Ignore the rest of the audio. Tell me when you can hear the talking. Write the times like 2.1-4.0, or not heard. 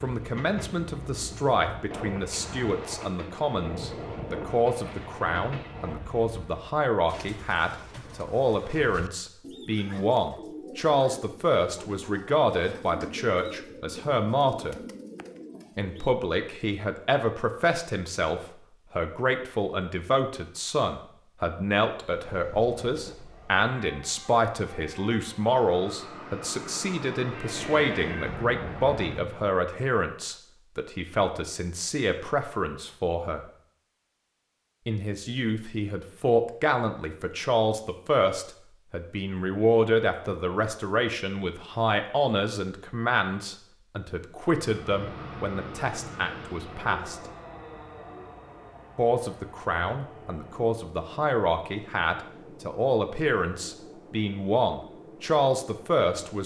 0.0-14.8, 15.8-33.5, 34.9-47.3, 49.0-56.4.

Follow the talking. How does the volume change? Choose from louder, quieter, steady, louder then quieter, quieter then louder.
steady.